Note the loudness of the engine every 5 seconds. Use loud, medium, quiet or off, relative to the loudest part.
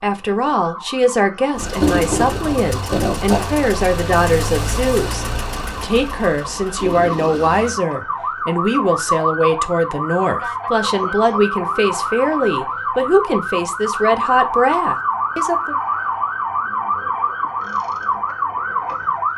loud, medium, off, off.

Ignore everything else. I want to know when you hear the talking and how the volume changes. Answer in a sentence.
The talking can be heard from 0.0 to 15.8 s, at a steady volume.